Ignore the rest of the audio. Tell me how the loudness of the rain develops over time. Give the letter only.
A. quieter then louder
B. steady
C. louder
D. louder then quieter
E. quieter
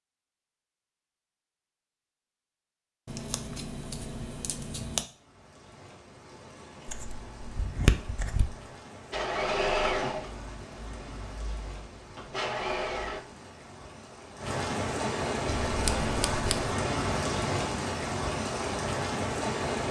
C.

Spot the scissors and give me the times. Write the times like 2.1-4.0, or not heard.
3.0-5.0, 6.8-8.6, 15.7-16.8.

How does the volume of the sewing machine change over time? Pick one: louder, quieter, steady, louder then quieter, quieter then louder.
quieter then louder.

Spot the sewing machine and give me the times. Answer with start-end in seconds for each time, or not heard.
9.1-13.2.